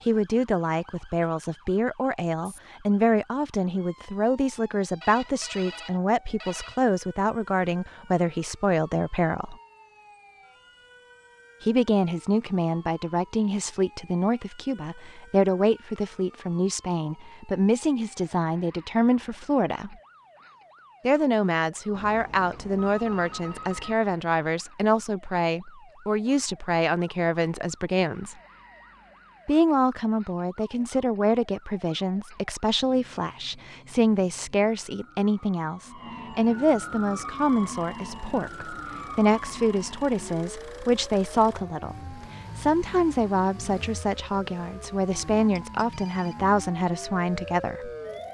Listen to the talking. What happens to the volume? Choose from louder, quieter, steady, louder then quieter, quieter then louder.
steady.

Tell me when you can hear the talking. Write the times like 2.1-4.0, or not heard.
0.1-9.6, 11.6-19.9, 21.1-28.4, 29.4-47.9.